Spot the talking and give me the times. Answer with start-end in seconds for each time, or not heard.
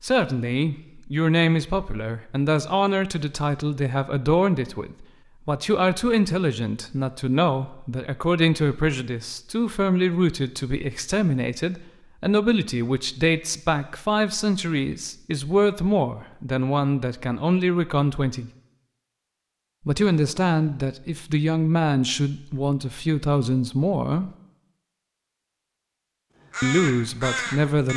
0.0-18.5, 19.9-24.3, 26.6-27.9.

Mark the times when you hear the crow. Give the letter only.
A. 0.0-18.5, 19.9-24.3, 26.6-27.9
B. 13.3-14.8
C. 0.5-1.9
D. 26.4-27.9
D.